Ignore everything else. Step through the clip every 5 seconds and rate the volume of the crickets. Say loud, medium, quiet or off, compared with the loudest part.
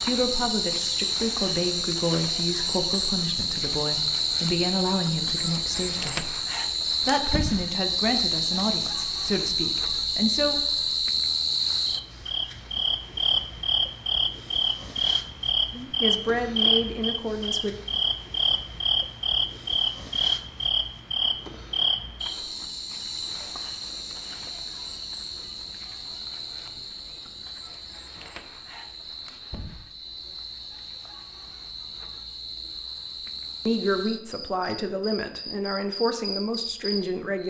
loud, loud, loud, loud, loud, quiet, quiet, medium.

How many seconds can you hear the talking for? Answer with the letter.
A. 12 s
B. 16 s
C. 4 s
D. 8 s
B.